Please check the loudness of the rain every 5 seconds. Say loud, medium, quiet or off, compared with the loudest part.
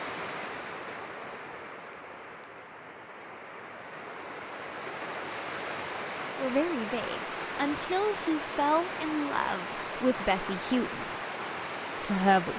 medium, loud, loud.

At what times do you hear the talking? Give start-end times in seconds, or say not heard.
6.3-11.1, 12.0-12.5.